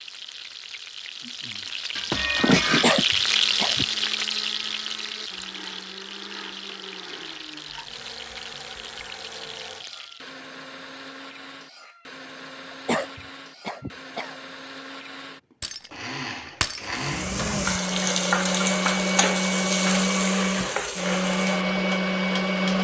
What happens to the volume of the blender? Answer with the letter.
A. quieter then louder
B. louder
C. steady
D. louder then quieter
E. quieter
B.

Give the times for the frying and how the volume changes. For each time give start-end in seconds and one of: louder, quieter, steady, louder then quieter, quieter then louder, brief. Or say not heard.
0.0-10.4 louder then quieter
16.9-22.7 quieter.